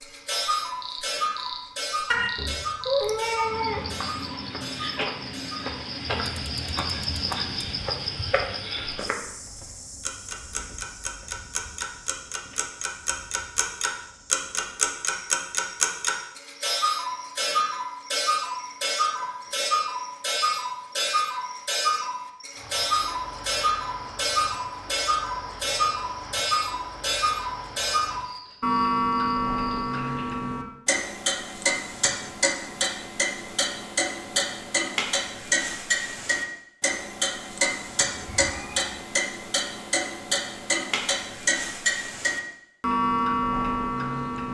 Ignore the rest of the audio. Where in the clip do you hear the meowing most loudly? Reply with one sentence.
The loudest moment of the meowing is at 3 seconds.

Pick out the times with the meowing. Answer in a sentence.
You can hear the meowing from 2.1 to 3.8 s and from 38.2 to 38.9 s.